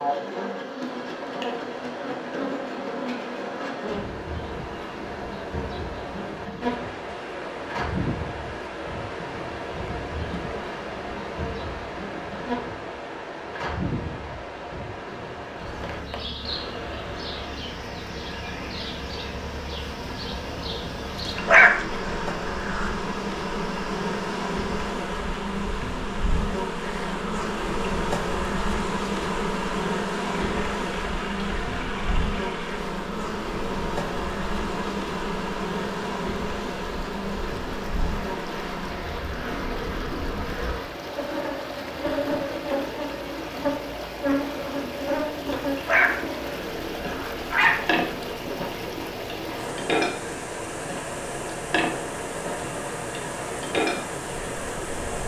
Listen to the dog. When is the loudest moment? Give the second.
22 s.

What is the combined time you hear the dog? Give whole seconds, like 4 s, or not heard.
4 s.